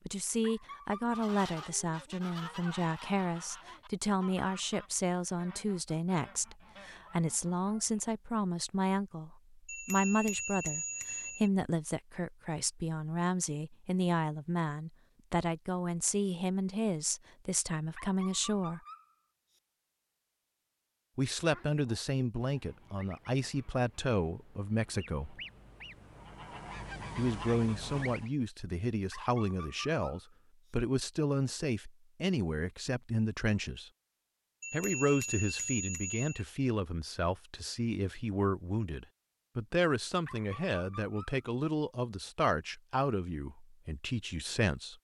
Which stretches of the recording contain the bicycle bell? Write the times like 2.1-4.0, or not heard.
9.7-11.5, 34.6-36.5.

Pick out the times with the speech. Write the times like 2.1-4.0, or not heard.
0.1-18.8, 21.1-25.4, 27.1-33.9, 34.7-44.9.